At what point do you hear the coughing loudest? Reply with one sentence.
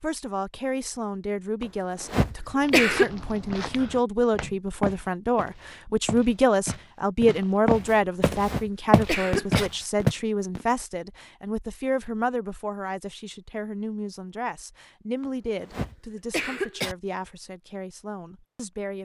The volume of the coughing peaks at 3 seconds.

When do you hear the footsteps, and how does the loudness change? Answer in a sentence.
You can hear the footsteps from 2.6 to 10.2 s, getting louder.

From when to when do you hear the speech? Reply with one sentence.
The speech can be heard from 0.0 to 18.9 s.